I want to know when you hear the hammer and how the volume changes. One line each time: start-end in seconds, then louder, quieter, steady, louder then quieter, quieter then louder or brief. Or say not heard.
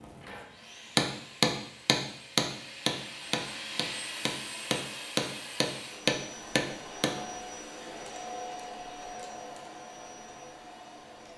0.9-7.2 quieter then louder.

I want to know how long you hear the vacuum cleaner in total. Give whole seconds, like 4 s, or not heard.
11 s.